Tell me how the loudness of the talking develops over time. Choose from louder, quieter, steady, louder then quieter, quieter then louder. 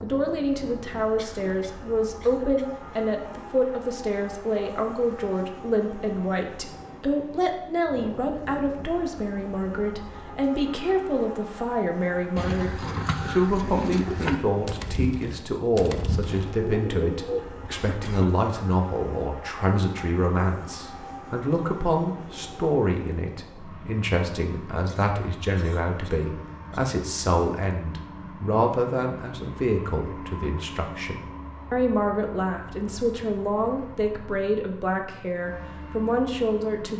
steady.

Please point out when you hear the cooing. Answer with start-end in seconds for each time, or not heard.
12.3-17.4.